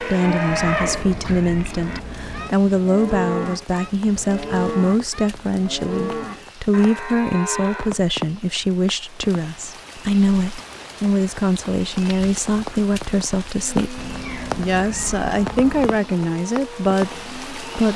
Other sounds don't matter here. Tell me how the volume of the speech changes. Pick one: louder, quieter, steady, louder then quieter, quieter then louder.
steady.